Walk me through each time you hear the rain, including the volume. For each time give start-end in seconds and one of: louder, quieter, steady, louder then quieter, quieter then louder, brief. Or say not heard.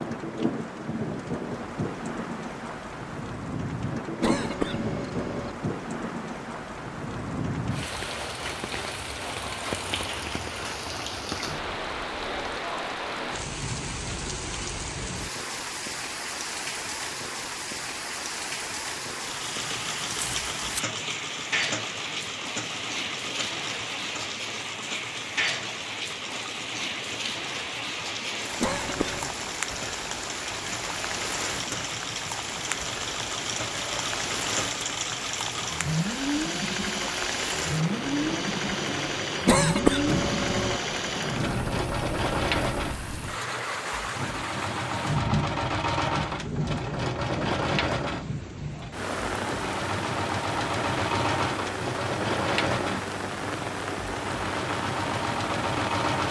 0.0-56.2 steady.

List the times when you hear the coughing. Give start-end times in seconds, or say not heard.
4.2-5.5, 28.6-29.4, 39.5-40.8.